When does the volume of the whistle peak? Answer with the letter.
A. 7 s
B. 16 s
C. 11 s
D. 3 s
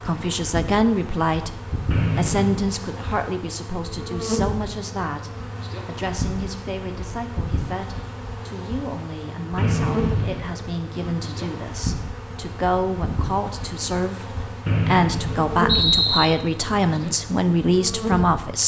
B.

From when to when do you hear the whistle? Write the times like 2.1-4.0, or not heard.
1.9-2.6, 9.6-10.6, 14.7-16.2.